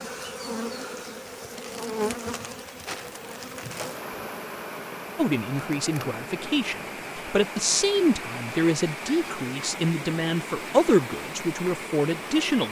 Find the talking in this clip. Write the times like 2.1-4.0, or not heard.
5.2-12.6.